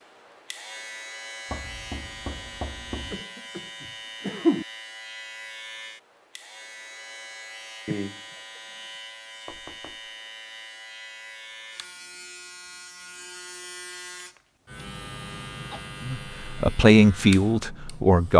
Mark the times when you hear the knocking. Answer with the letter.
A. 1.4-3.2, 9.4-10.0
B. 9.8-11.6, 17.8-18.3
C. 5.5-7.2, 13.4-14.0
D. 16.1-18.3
A.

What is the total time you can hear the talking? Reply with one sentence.
You can hear the talking for 2 seconds altogether.